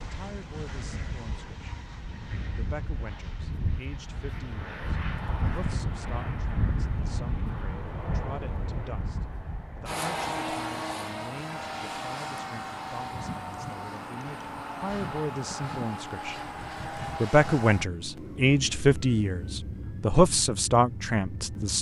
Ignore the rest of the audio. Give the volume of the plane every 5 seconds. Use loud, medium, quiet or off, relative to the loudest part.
medium, loud, loud, loud, medium.